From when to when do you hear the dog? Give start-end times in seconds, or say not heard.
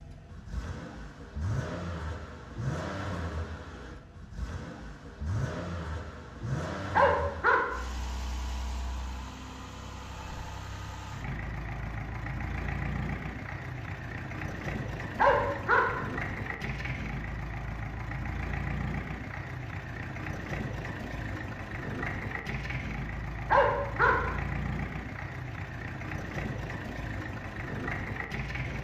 6.9-7.6, 15.2-15.8, 23.5-24.1.